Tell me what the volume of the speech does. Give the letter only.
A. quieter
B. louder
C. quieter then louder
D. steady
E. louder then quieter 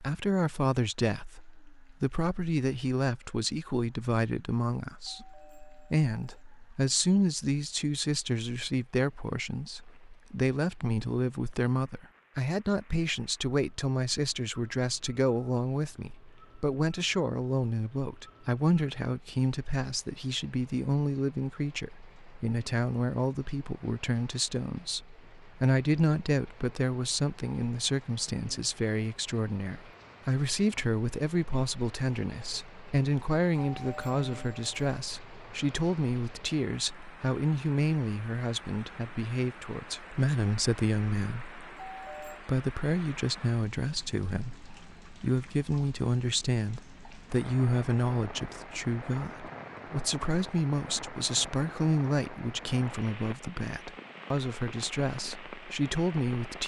D.